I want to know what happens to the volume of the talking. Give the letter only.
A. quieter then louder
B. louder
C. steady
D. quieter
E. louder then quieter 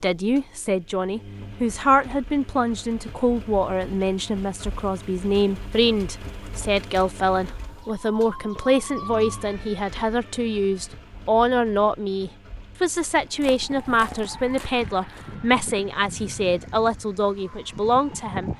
C.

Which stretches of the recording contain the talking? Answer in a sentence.
The talking can be heard from 0.0 to 18.5 s.